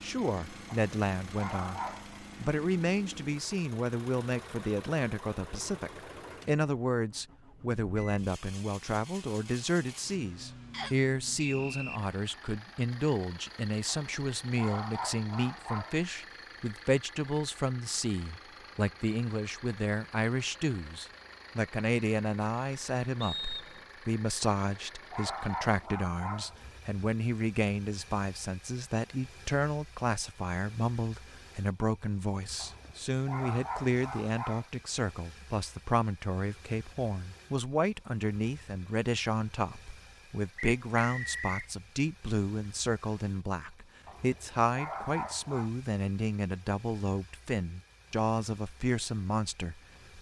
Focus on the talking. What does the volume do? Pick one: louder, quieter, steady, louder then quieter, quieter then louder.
steady.